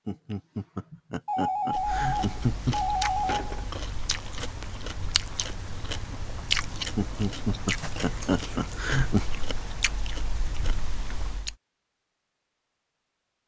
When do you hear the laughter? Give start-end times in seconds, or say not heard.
0.1-2.8, 7.0-9.2.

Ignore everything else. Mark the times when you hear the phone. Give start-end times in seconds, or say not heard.
1.2-3.7.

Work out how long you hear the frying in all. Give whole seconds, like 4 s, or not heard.
not heard.